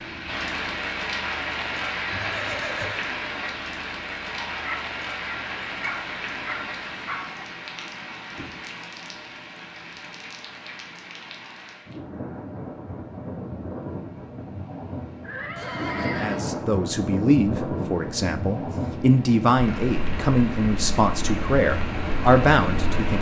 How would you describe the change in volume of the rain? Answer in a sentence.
The volume of the rain goes down, then up.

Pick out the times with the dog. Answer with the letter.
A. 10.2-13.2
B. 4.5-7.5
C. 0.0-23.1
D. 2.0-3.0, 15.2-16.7
B.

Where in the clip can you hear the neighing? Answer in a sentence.
The neighing can be heard from 2.0 to 3.0 s and from 15.2 to 16.7 s.